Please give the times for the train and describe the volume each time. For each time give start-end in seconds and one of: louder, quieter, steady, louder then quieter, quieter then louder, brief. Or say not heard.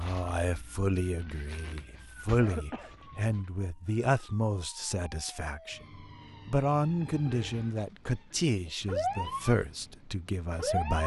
not heard.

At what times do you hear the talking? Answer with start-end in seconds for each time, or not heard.
0.0-11.0.